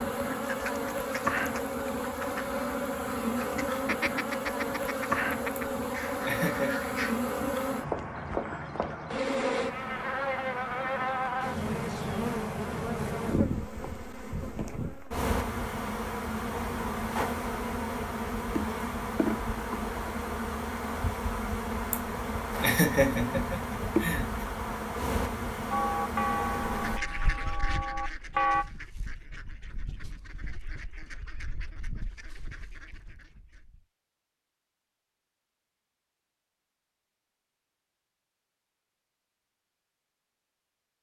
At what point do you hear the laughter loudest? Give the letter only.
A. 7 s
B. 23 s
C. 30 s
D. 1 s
B.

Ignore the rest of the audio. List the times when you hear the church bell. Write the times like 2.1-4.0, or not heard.
25.7-28.6.